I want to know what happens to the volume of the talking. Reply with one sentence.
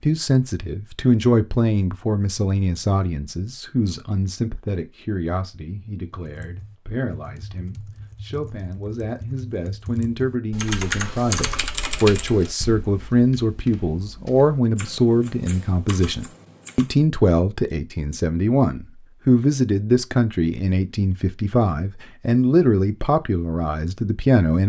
The loudness of the talking goes down, then up.